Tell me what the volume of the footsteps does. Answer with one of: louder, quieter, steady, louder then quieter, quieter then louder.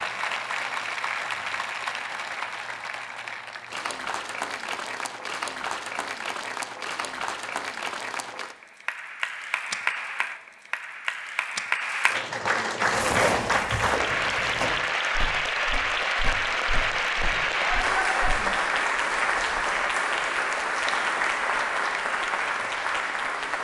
quieter.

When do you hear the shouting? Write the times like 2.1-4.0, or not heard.
17.6-18.6.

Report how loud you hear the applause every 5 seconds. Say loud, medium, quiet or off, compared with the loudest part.
medium, medium, loud, loud, loud.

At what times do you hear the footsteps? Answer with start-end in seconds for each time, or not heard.
12.8-18.3.